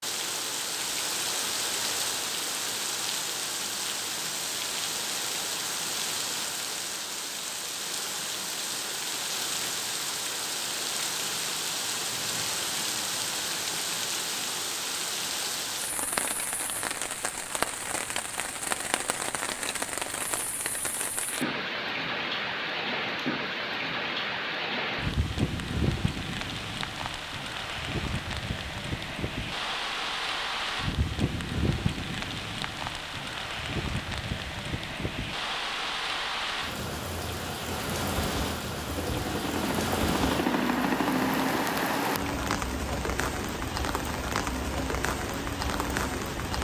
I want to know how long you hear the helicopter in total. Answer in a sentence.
The helicopter can be heard for 8 seconds in total.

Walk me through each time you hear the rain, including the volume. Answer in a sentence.
You can hear the rain from 0.0 to 46.5 s, at a steady volume.